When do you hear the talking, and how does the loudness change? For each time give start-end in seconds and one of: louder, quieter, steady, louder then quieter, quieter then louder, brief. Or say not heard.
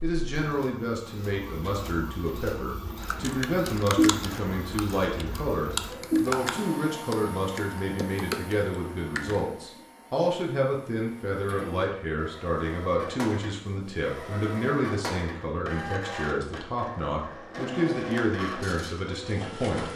0.0-19.9 steady.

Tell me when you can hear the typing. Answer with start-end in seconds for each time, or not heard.
3.0-9.5.